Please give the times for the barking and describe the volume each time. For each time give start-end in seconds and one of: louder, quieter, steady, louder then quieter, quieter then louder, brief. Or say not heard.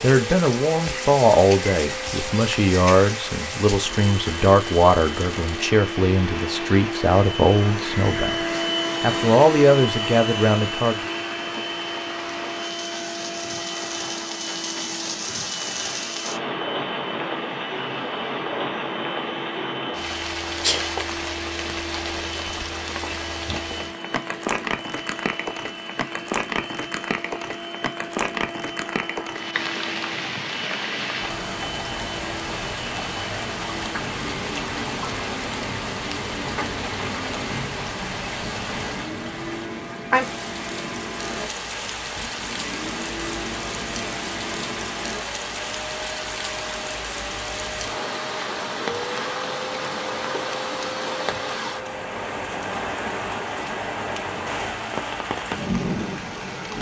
not heard.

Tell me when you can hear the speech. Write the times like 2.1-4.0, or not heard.
0.0-10.9.